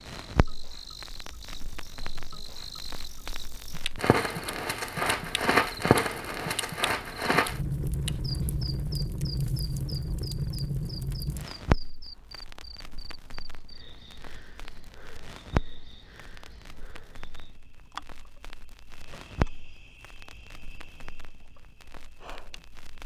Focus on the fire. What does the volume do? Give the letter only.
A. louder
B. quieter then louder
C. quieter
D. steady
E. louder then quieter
E.